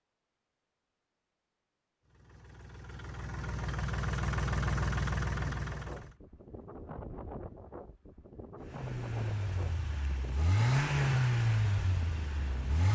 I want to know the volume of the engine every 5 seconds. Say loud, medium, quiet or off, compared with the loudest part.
medium, medium, loud.